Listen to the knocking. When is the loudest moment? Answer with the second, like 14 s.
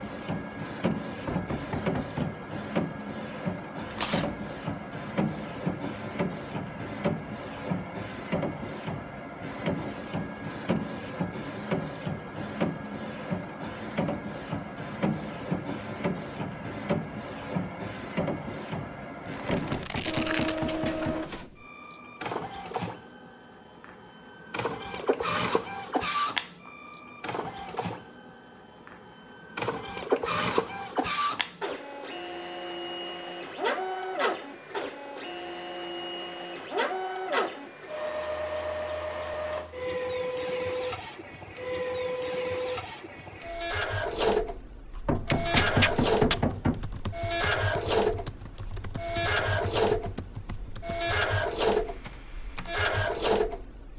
46 s.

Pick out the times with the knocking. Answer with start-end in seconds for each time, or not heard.
1.2-2.4, 19.5-21.2, 45.0-46.9.